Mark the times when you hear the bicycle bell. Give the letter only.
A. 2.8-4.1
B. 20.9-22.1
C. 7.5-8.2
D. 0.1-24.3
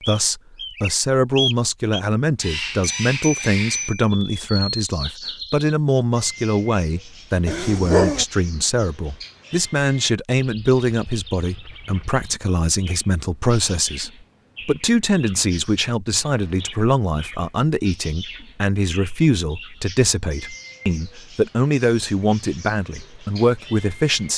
A.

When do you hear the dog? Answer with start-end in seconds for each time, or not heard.
7.5-8.2.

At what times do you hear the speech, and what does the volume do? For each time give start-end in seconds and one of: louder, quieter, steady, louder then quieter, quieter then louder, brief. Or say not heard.
0.1-24.3 steady.